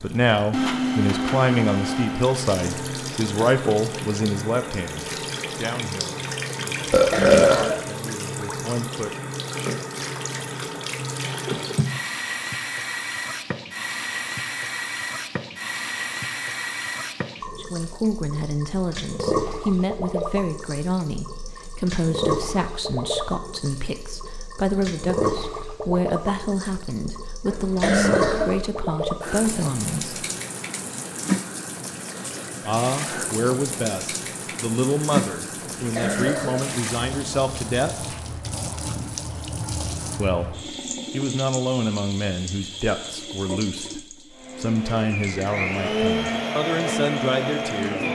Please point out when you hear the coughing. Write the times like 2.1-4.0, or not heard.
6.9-7.8, 27.5-28.6, 35.8-36.7.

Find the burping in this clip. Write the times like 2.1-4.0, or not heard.
6.9-7.8.